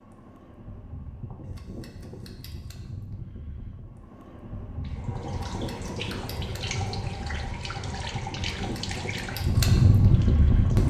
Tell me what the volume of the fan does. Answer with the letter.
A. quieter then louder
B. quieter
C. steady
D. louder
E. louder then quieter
D.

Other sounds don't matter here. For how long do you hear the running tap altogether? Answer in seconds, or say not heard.
6 s.